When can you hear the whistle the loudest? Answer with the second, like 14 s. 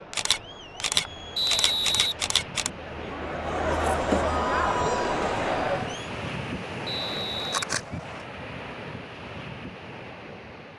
2 s.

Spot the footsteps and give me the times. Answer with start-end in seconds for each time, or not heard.
not heard.